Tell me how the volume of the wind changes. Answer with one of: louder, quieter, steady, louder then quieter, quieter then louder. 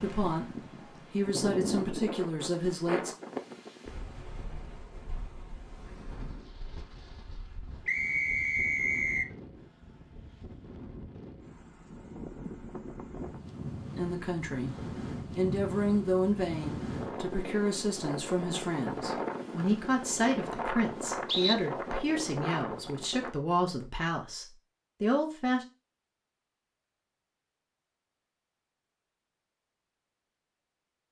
quieter then louder.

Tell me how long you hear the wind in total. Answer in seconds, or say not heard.
23 s.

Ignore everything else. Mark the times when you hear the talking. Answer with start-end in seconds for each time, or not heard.
0.0-3.1, 13.9-25.6.